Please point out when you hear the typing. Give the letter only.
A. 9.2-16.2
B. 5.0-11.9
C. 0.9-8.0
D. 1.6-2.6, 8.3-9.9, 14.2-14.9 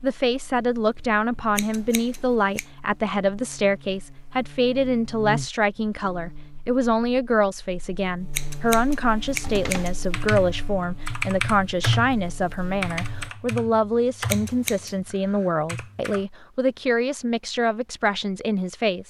A.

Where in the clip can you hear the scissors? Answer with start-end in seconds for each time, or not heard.
1.6-2.6, 8.3-9.9, 14.2-14.9.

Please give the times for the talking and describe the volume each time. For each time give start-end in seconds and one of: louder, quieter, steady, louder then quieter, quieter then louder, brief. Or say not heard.
0.0-19.0 steady.